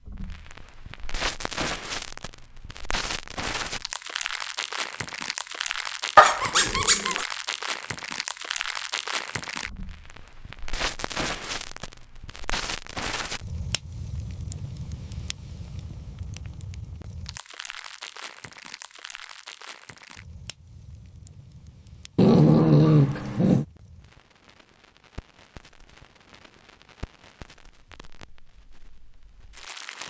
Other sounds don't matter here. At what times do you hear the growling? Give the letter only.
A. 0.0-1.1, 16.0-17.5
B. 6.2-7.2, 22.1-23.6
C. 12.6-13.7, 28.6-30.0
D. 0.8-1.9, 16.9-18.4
B.